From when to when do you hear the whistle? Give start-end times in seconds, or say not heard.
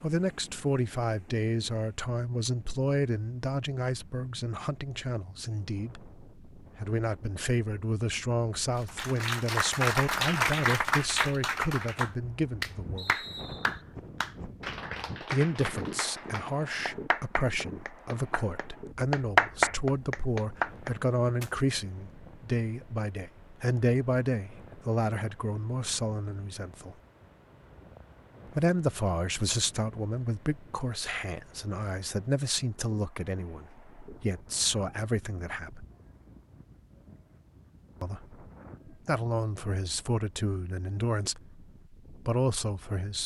12.9-13.8.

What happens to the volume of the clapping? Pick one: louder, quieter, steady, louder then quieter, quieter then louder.
quieter then louder.